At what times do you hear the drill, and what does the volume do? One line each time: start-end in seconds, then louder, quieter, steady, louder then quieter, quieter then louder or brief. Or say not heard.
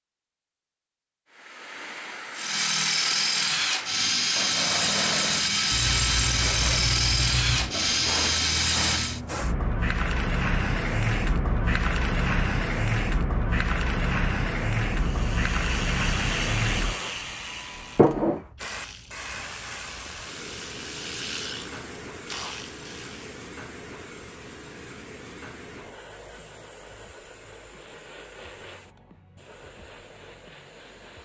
2.4-9.2 steady.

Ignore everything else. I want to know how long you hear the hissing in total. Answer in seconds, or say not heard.
30 s.